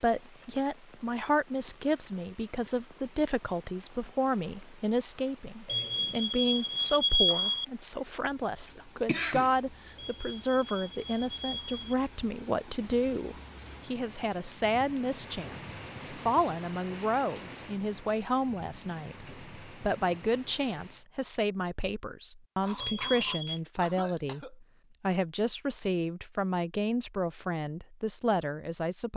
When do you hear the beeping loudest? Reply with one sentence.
The volume of the beeping peaks at 7 seconds.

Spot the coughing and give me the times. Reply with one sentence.
The coughing can be heard from 9.1 to 9.5 s and from 22.6 to 24.6 s.